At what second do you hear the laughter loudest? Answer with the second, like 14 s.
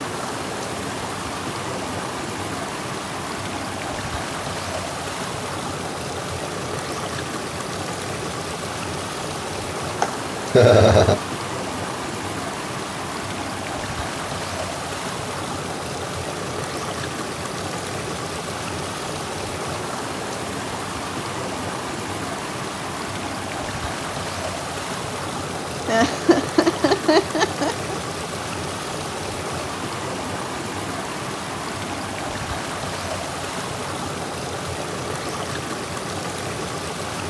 11 s.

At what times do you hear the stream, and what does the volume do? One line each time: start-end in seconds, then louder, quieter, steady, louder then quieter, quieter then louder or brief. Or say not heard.
0.0-37.2 steady.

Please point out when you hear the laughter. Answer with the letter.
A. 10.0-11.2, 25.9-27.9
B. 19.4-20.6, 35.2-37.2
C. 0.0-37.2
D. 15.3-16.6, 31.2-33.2
A.